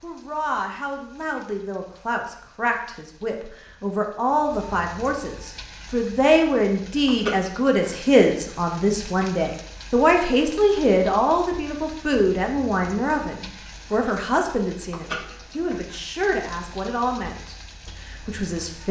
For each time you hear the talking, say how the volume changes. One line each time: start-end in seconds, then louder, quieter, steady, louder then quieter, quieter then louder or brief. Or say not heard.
0.0-18.8 louder then quieter.